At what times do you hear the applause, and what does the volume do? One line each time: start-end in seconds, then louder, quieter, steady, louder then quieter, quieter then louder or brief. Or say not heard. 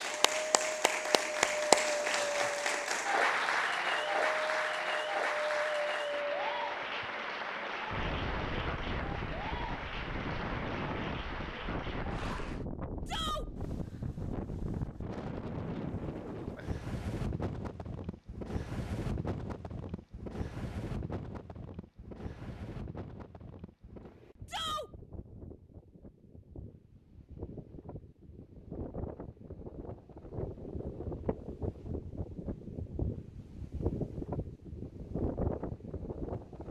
0.0-12.7 quieter.